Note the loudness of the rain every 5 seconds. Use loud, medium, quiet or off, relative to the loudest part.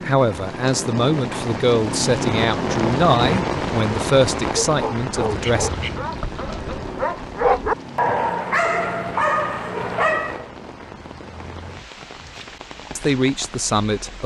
loud, medium, quiet.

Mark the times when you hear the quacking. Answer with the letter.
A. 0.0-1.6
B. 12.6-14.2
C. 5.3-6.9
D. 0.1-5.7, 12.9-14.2
C.